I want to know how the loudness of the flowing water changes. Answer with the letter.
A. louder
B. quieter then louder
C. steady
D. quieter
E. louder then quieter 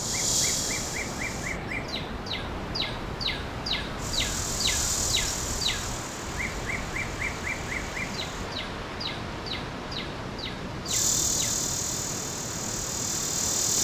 C.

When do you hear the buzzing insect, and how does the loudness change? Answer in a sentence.
The buzzing insect can be heard briefly from 0.0 to 1.6 s; from 4.0 to 8.5 s, getting quieter; and briefly from 10.8 to 13.7 s.